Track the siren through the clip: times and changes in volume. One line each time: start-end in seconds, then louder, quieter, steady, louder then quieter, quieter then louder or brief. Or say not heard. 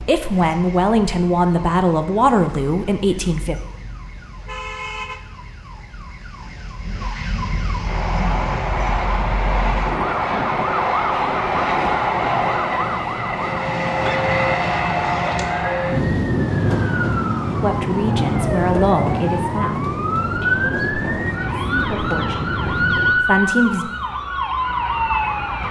0.0-25.6 louder.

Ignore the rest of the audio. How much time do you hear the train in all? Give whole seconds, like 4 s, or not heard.
15 s.